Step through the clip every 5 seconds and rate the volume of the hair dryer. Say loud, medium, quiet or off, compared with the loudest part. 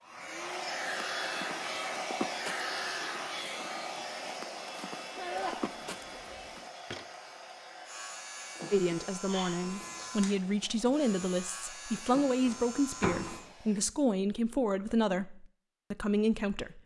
loud, medium, quiet, off.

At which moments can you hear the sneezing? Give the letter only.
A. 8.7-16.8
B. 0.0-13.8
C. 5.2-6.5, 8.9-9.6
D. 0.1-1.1
C.